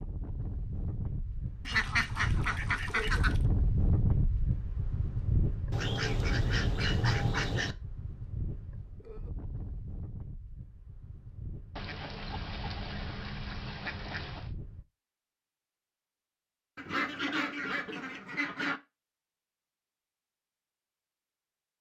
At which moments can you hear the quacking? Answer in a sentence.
The quacking can be heard from 1.6 to 3.4 s, from 5.7 to 7.8 s, from 11.8 to 14.5 s and from 16.8 to 18.8 s.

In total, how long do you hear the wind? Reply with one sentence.
The wind can be heard for 15 seconds in total.